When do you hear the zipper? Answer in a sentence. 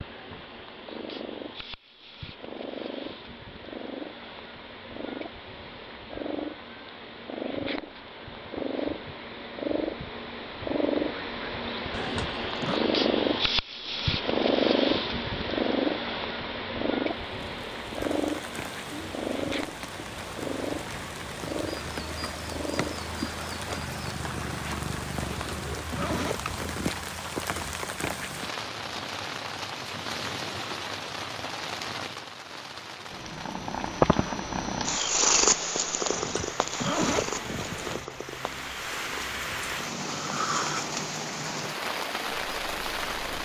The zipper can be heard from 11.9 to 12.8 s, from 25.2 to 26.6 s and from 36.1 to 38.0 s.